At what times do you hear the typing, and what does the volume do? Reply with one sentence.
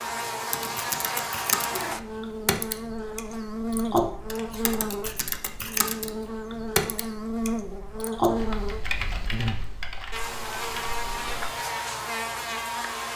You can hear the typing from 0.5 to 11.5 s, getting quieter.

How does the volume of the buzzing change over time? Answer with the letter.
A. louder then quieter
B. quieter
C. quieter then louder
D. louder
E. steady
E.